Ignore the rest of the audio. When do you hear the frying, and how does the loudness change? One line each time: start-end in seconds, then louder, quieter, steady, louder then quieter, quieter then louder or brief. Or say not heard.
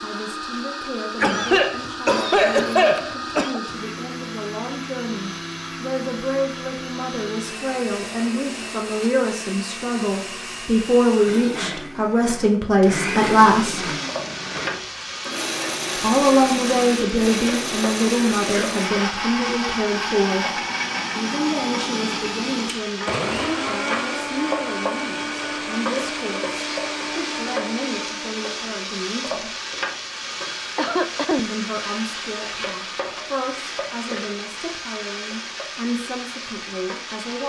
13.3-37.4 steady.